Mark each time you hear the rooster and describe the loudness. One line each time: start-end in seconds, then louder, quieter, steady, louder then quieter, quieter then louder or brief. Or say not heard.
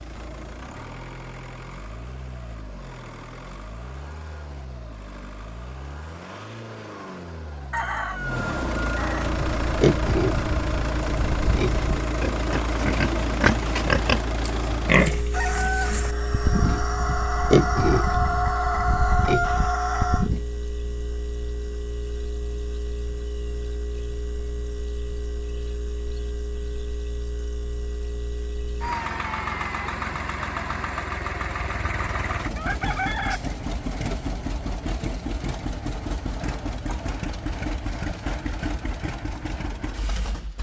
7.7-9.3 brief
15.3-20.3 louder
31.6-33.4 brief.